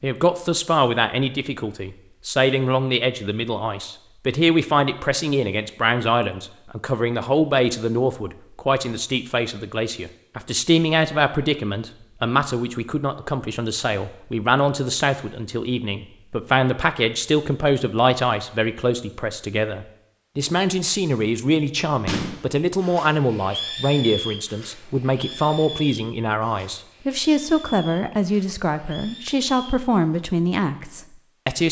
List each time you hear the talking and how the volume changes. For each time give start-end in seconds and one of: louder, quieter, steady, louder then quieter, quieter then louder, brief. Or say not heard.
0.0-31.6 steady.